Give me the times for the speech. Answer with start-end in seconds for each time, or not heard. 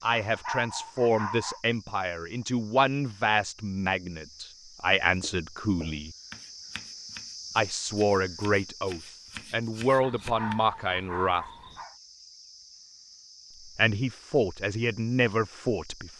0.0-6.2, 7.5-11.4, 13.7-16.1.